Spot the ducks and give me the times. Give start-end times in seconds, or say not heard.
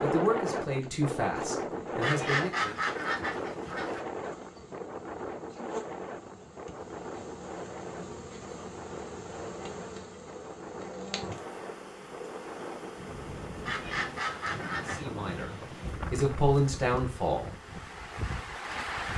2.0-4.0, 13.7-15.1.